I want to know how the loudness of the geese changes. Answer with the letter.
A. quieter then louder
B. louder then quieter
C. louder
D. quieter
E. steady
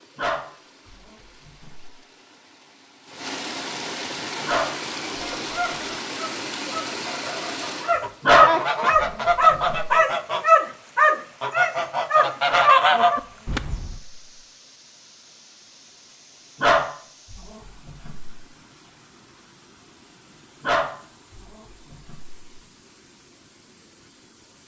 C.